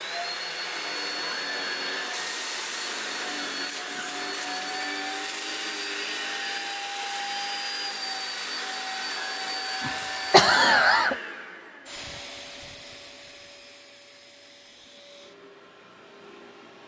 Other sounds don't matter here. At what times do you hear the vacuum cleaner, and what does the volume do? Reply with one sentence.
You can hear the vacuum cleaner from 0.0 to 16.8 s, getting quieter.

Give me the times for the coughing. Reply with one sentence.
You can hear the coughing from 9.8 to 11.2 s.